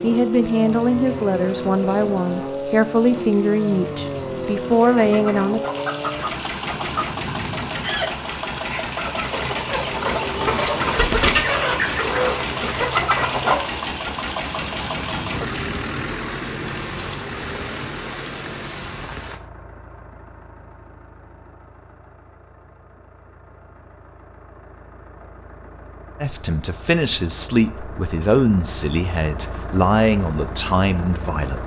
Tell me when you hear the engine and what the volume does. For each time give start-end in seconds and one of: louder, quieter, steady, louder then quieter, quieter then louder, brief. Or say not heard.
0.0-31.6 quieter then louder.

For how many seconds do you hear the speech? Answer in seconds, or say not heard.
11 s.